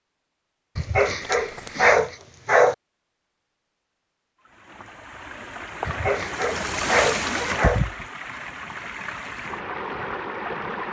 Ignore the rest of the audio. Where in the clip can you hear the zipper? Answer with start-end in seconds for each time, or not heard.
1.2-1.9, 6.5-7.7.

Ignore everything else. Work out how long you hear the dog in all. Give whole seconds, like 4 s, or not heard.
4 s.